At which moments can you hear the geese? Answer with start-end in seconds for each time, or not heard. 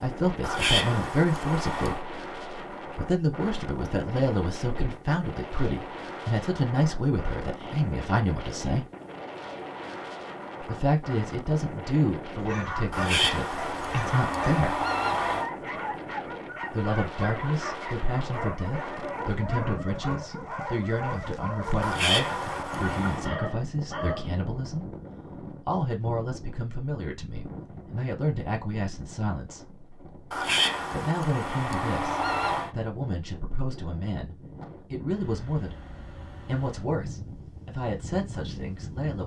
0.4-2.0, 12.9-15.5, 21.8-23.3, 30.3-32.7.